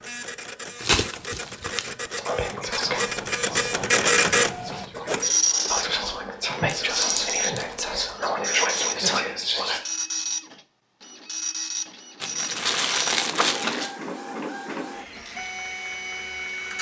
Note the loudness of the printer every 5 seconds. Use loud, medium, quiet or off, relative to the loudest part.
loud, loud, medium, medium.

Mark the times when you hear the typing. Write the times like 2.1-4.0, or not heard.
not heard.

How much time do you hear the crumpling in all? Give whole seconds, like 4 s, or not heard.
4 s.